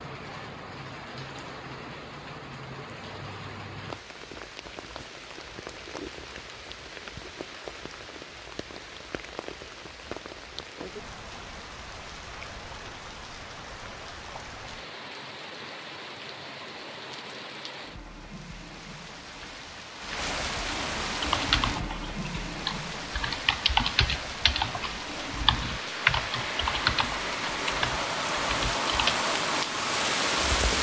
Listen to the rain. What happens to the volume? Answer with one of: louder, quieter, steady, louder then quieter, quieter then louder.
louder.